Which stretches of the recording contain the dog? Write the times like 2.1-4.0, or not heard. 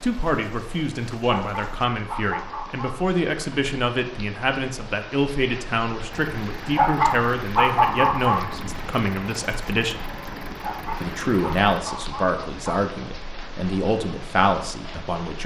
1.4-3.1, 6.8-8.4, 10.6-12.8.